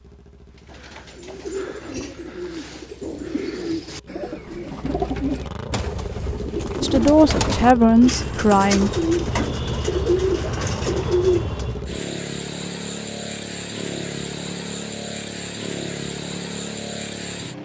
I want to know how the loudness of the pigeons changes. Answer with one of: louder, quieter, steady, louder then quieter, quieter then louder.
louder.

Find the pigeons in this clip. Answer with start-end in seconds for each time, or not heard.
0.6-11.8.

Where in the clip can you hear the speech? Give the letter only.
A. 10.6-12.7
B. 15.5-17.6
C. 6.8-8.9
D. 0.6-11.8
C.